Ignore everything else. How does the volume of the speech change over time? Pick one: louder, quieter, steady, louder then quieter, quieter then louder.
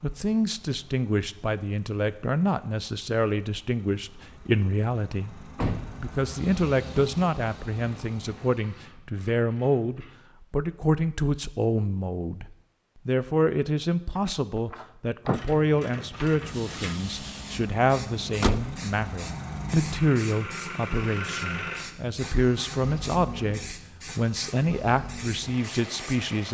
steady.